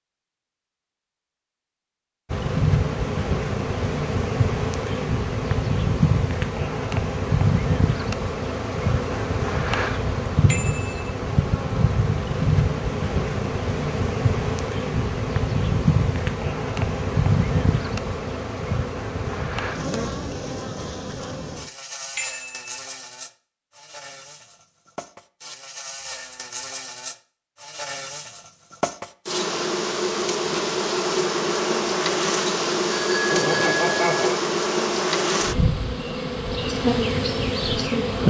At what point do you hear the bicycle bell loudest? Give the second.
34 s.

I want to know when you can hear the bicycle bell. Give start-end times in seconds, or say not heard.
10.4-11.1, 22.1-22.6, 33.0-34.4.